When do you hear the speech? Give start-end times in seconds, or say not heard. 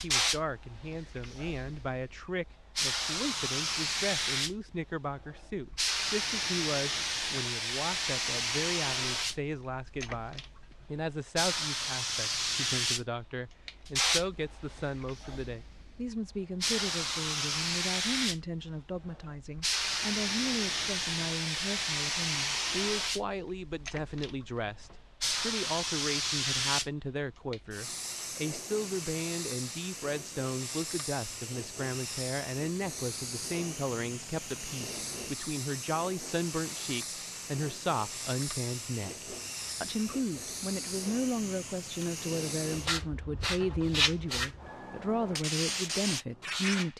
0.0-46.9.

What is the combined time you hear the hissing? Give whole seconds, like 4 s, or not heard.
47 s.